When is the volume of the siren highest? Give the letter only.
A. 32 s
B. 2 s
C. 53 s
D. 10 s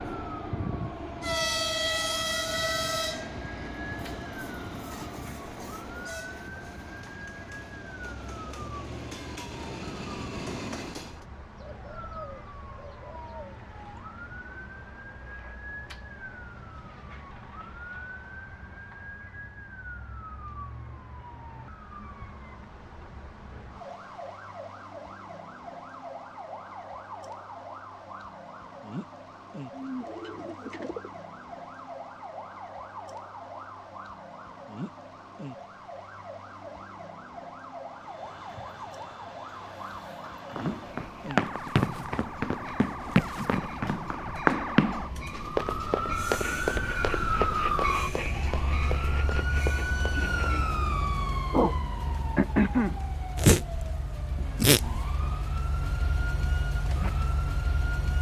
C.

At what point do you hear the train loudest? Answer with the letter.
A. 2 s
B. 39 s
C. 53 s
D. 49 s
A.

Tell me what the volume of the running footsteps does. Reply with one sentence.
The loudness of the running footsteps goes down.